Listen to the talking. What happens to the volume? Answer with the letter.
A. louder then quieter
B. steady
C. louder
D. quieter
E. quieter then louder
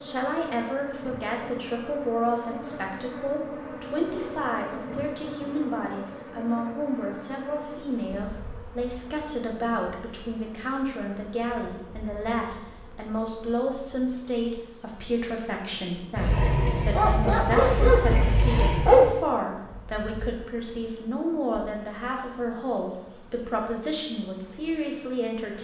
B.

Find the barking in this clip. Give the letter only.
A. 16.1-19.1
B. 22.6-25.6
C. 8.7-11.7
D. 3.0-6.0
A.